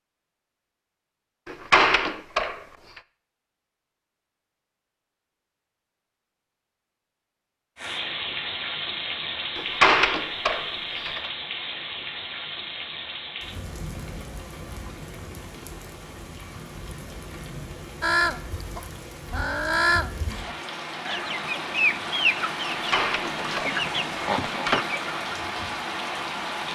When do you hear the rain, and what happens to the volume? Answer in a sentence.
The rain can be heard from 7.8 to 26.7 s, getting quieter then louder.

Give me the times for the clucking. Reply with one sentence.
The clucking can be heard from 18.0 to 25.4 s.